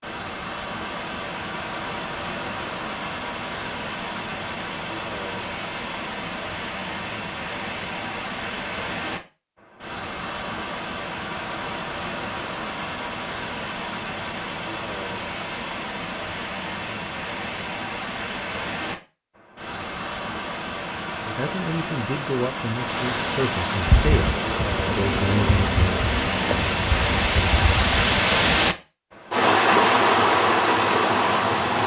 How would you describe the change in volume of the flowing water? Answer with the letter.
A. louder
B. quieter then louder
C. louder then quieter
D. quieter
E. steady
A.